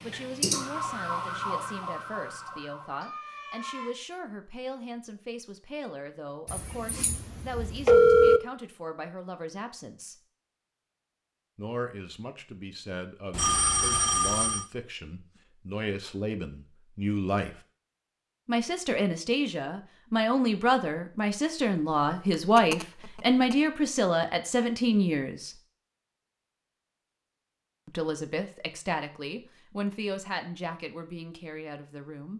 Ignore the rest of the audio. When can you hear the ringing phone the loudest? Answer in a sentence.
The loudest moment of the ringing phone is at 8 seconds.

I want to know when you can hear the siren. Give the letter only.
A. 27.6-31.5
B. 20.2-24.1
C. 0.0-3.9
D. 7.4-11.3
C.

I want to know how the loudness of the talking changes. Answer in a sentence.
The volume of the talking goes up, then down.